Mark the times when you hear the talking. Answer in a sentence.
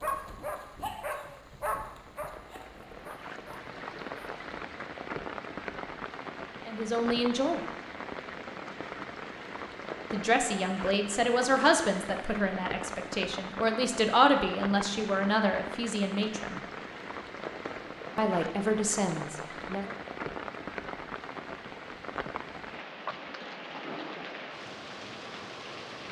The talking can be heard from 6.7 to 7.6 s, from 10.1 to 16.6 s and from 18.1 to 19.9 s.